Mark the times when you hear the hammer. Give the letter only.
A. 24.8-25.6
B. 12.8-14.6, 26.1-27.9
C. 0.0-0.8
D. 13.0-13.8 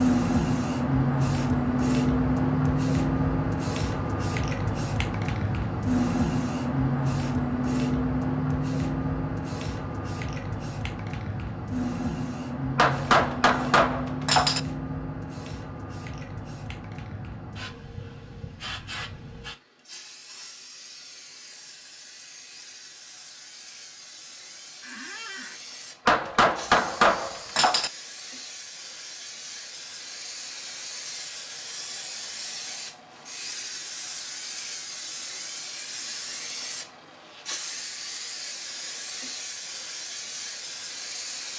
B.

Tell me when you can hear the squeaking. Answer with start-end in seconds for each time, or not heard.
24.8-25.6.